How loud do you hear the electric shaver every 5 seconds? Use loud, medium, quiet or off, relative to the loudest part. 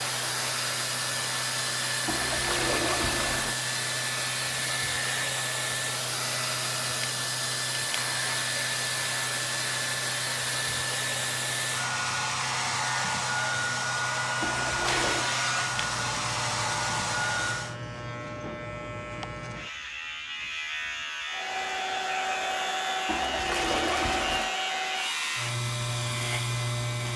medium, medium, medium, medium, loud, loud.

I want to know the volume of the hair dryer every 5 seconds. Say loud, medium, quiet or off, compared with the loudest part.
loud, loud, loud, loud, loud, medium.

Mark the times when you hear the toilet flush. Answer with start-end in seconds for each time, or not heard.
2.0-3.5, 14.4-15.3, 23.1-24.6.